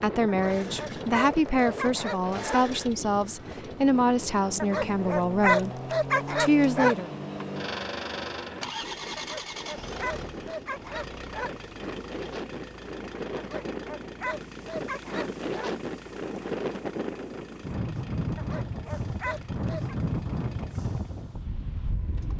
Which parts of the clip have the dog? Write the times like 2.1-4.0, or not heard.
0.2-2.6, 4.6-7.0, 9.2-11.6, 13.3-15.8, 18.4-19.9.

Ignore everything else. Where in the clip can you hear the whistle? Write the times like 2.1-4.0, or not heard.
not heard.